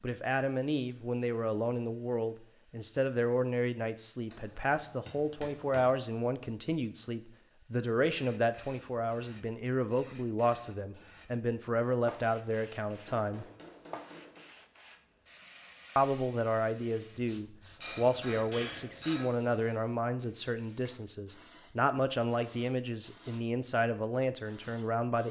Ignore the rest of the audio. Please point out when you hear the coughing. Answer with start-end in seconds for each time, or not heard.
not heard.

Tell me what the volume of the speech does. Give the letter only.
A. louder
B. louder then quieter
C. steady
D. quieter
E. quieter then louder
C.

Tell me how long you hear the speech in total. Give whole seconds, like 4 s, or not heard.
23 s.